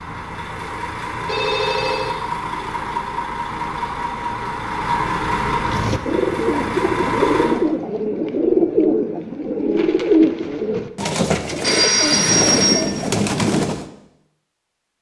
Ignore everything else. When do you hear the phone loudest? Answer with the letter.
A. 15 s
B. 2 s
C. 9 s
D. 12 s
D.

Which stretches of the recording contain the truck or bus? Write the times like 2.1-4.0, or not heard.
0.0-7.7.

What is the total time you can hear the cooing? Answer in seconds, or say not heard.
8 s.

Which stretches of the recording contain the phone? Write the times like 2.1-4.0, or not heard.
1.2-2.1, 11.4-12.8.